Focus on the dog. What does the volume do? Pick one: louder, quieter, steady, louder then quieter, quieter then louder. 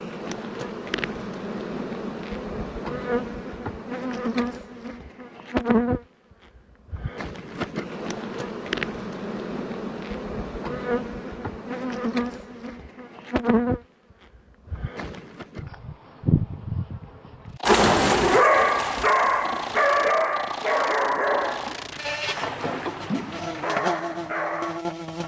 quieter.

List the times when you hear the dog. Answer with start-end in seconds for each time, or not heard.
17.6-24.8.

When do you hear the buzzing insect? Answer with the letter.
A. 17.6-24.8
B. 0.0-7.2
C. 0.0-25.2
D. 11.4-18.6
C.